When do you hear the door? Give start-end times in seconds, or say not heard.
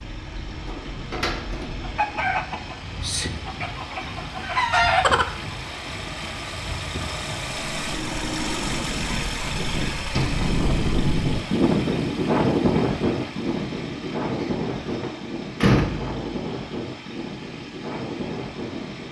0.6-2.2, 10.1-10.6, 14.4-16.2.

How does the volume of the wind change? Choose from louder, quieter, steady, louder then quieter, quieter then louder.
louder then quieter.